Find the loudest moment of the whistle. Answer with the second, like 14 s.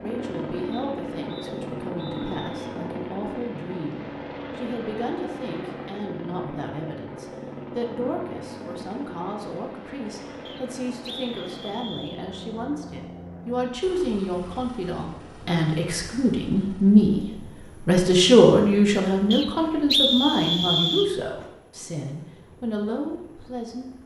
20 s.